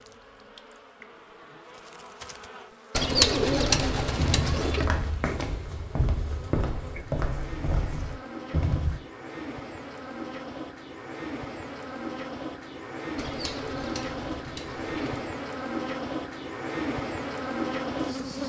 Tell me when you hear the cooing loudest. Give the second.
3 s.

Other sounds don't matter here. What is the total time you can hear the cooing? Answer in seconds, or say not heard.
4 s.